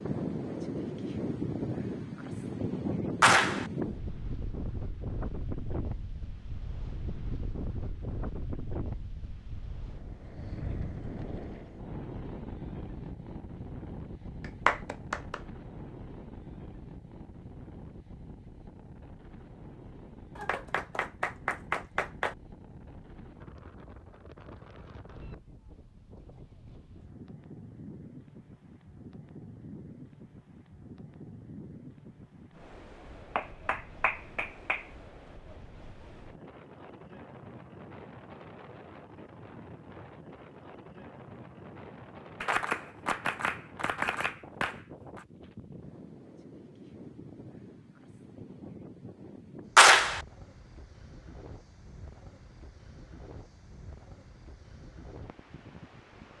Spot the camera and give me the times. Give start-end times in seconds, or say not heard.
not heard.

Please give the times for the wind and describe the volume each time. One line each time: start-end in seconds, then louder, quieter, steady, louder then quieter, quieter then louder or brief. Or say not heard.
0.0-56.3 quieter.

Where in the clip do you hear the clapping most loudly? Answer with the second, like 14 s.
50 s.